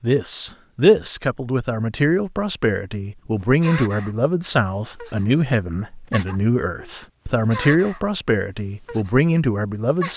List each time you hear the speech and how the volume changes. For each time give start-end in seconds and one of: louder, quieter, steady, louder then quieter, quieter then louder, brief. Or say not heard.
0.0-10.1 steady.